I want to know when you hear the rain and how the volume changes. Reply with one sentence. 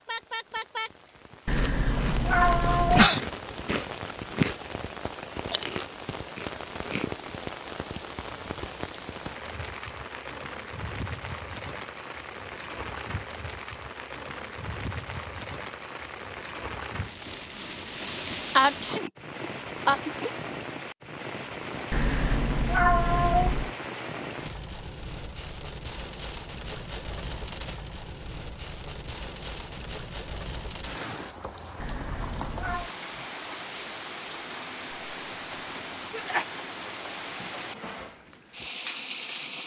You can hear the rain from 0.0 to 39.6 s, at a steady volume.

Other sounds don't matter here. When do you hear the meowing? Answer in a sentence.
The meowing can be heard from 1.4 to 3.1 s, from 21.9 to 23.7 s and from 31.8 to 32.9 s.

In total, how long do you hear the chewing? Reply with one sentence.
The chewing can be heard for 5 seconds in total.